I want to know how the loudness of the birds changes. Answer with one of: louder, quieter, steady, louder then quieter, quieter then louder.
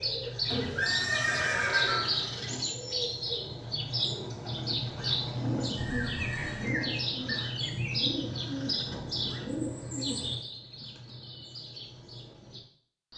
quieter.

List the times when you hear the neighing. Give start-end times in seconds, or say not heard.
0.5-2.6, 5.8-6.7, 8.8-9.4.